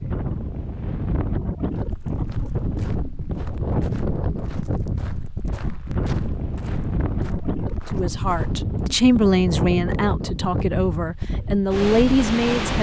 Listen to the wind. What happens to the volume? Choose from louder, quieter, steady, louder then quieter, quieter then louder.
steady.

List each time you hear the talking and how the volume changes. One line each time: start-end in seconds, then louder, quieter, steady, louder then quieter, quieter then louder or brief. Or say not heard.
7.9-12.7 quieter then louder.